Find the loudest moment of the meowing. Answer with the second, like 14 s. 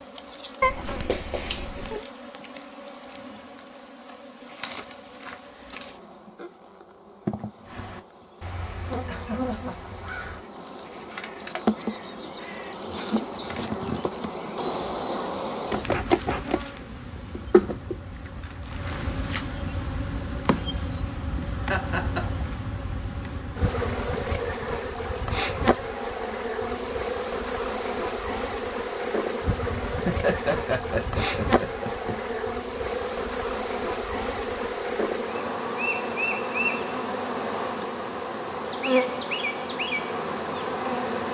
1 s.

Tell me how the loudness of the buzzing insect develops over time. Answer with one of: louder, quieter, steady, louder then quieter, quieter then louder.
louder.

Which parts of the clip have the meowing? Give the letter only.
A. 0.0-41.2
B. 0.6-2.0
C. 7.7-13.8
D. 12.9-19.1
B.